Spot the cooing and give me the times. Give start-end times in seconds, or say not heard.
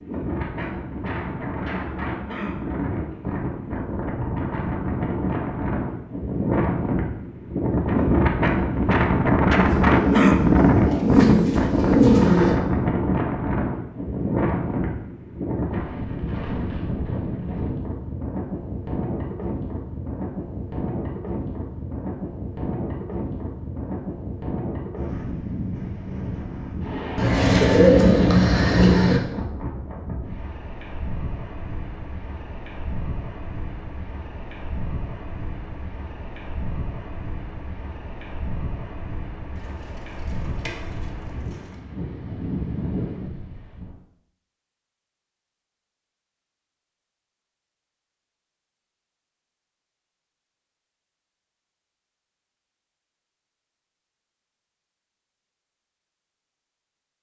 9.6-12.6, 27.1-29.2, 39.5-41.8.